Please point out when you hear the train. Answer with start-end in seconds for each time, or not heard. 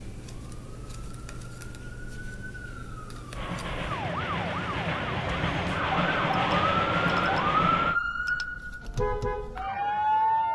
3.3-8.0.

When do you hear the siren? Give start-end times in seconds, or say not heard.
0.0-10.5.